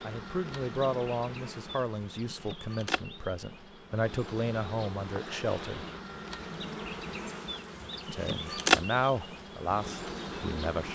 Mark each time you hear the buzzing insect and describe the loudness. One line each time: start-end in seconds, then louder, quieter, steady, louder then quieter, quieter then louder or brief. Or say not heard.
0.0-10.8 louder.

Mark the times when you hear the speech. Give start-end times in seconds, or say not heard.
0.0-5.8, 8.1-10.8.